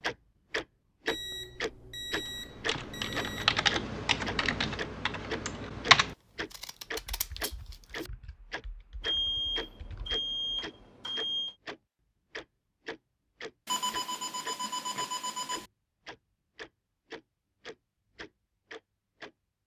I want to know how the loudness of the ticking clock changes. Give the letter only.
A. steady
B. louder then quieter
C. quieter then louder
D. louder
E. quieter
E.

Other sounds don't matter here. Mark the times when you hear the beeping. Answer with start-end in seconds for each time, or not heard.
1.1-3.5, 9.0-11.6, 13.7-15.7.